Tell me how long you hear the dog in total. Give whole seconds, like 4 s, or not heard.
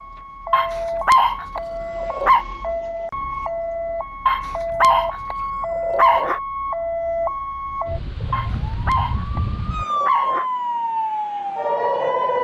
6 s.